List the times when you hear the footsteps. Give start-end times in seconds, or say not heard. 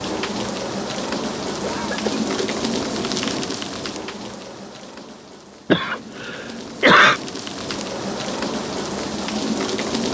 not heard.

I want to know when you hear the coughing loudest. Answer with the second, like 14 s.
7 s.